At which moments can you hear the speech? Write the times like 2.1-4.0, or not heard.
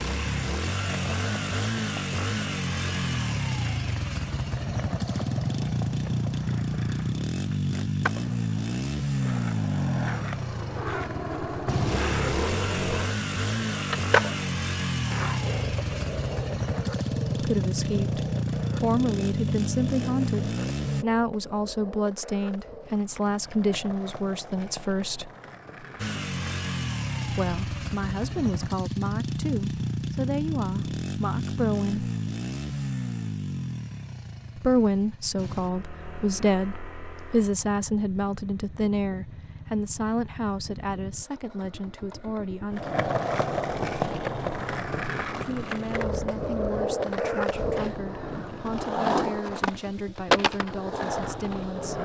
17.4-25.3, 27.2-32.1, 34.5-42.9, 45.4-52.0.